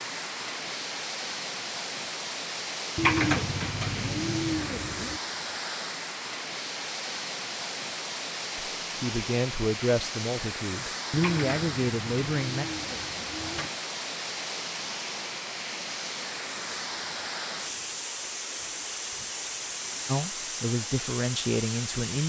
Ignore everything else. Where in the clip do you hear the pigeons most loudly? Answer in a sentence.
The volume of the pigeons peaks at 3 seconds.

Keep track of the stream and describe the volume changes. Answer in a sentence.
The loudness of the stream stays about the same.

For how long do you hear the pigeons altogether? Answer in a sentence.
The pigeons can be heard for 5 seconds in total.